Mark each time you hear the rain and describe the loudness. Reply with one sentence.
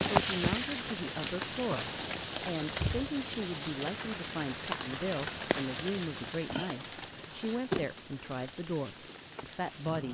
You can hear the rain from 0.0 to 10.0 s, getting quieter.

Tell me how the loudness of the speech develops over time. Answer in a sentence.
The volume of the speech stays about the same.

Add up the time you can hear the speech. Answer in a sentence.
You can hear the speech for 10 seconds altogether.